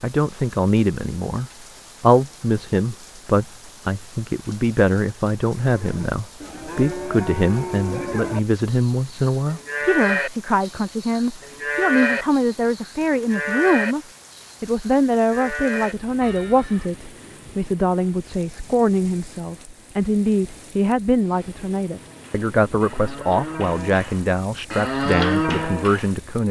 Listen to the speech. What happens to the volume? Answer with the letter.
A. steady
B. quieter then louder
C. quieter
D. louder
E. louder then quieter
A.